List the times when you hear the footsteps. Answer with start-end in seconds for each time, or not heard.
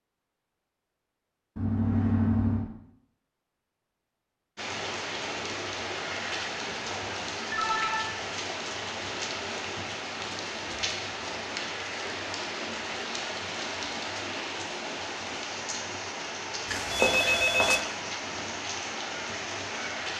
not heard.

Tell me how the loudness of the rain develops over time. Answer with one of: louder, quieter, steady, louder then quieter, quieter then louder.
steady.